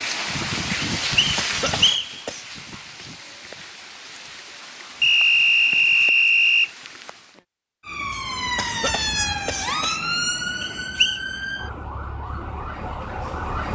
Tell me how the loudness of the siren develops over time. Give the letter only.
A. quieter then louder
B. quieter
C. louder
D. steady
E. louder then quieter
B.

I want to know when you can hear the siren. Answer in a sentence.
You can hear the siren from 7.8 to 13.6 s.